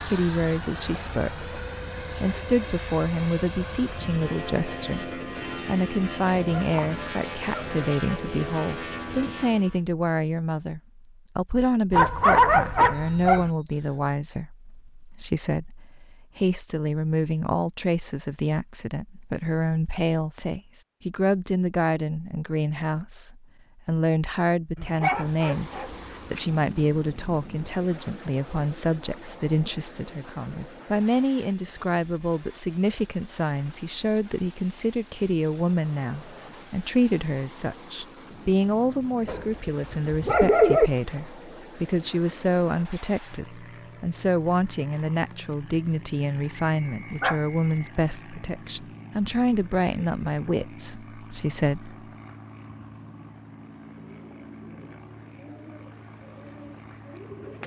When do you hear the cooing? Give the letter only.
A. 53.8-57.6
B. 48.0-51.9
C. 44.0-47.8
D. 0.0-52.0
A.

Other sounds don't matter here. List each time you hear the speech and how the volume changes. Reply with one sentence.
The speech can be heard from 0.0 to 52.0 s, at a steady volume.